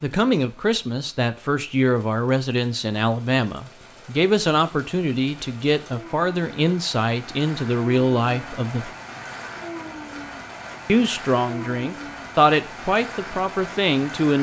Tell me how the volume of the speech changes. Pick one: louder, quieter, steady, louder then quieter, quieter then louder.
steady.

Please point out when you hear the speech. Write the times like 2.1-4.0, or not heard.
0.0-8.9, 10.8-14.3.